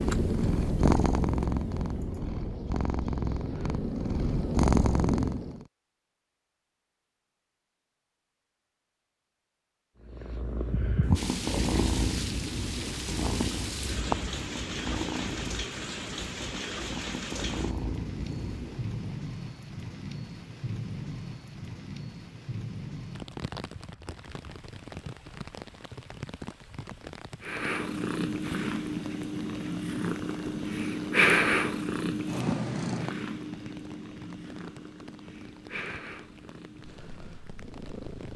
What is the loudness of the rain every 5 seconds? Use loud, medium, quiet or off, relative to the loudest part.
off, off, loud, loud, loud, medium, medium, quiet.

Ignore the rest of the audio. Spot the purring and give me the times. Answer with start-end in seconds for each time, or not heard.
0.0-5.7, 10.1-19.1, 27.4-38.3.